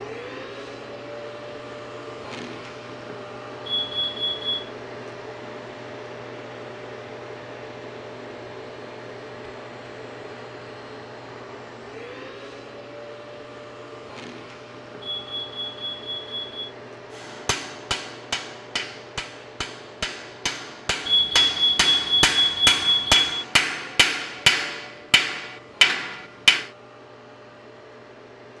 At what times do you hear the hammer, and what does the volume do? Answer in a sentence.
The hammer can be heard from 17.1 to 26.7 s, getting louder.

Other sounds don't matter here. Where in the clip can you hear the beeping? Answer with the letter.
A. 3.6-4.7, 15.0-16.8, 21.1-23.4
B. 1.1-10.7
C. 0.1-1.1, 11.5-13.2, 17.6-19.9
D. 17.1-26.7
A.